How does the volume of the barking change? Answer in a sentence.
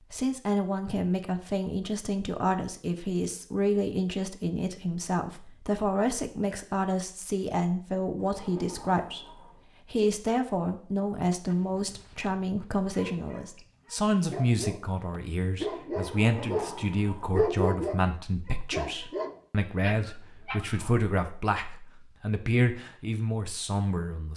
The volume of the barking goes up, then down.